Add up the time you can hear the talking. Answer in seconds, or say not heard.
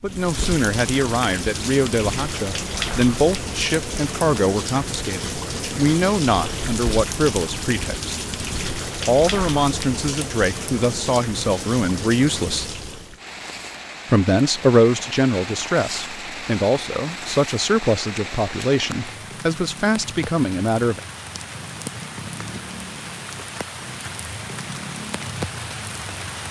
19 s.